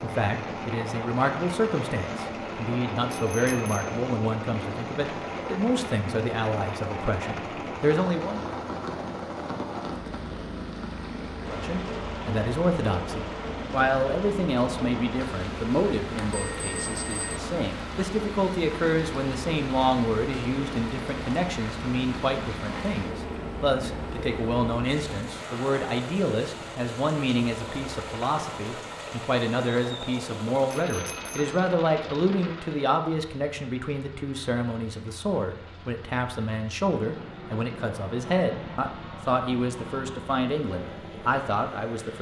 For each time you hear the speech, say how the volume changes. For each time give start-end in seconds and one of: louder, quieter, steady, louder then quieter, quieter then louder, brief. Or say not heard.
0.0-8.4 steady
11.5-42.1 steady.